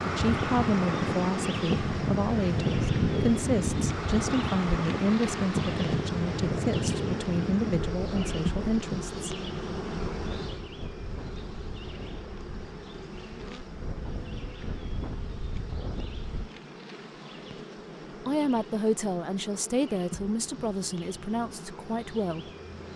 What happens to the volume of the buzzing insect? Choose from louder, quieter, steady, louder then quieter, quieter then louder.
quieter.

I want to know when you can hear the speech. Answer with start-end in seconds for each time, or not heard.
0.1-9.3, 18.2-22.5.